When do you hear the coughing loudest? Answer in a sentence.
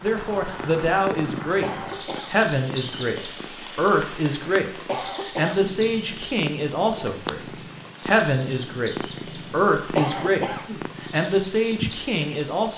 The loudest moment of the coughing is at 10 seconds.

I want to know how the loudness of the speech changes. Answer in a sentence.
The loudness of the speech stays about the same.